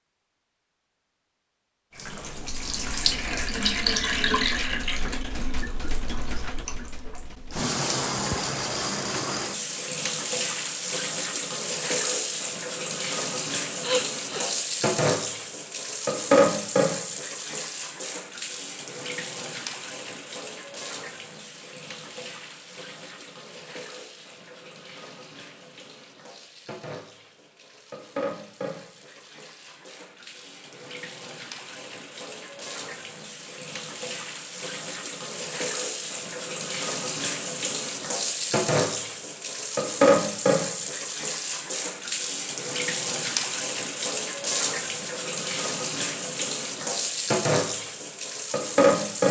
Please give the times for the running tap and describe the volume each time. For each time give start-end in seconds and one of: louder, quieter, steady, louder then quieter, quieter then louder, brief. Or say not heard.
1.9-49.2 quieter then louder.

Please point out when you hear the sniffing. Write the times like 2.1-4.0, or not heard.
13.8-14.6.